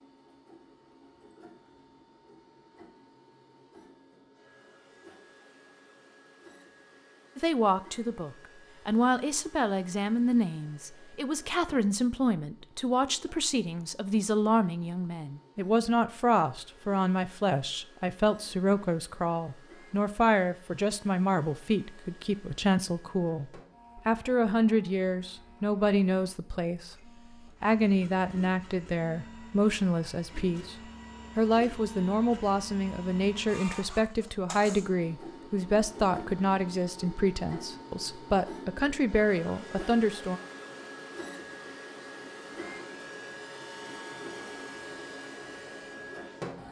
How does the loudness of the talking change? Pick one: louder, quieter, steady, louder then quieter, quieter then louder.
steady.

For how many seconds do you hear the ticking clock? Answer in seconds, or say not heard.
not heard.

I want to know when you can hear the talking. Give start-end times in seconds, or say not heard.
7.3-30.8, 31.4-40.4.